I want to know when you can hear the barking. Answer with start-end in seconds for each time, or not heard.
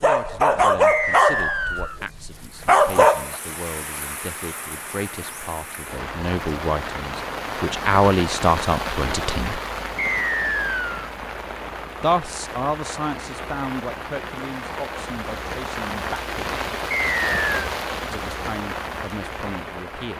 0.0-3.4.